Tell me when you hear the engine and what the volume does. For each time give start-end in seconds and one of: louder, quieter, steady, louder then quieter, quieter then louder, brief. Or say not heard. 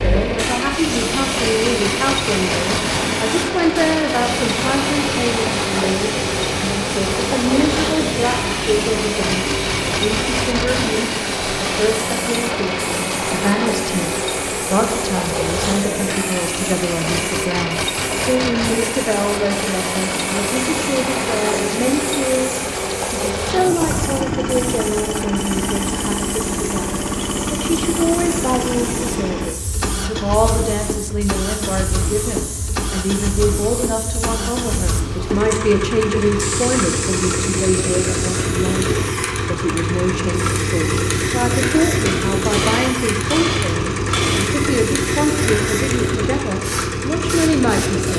0.0-48.1 steady.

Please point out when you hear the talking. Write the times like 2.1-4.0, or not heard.
0.0-48.1.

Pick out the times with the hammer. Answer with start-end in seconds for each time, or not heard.
42.0-44.5.